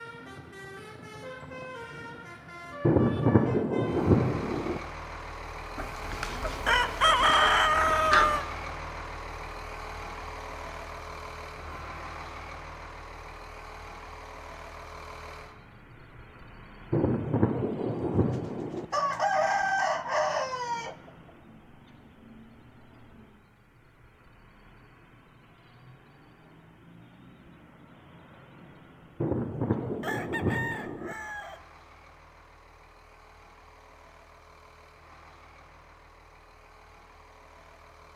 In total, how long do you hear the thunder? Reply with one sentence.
The thunder can be heard for 6 seconds in total.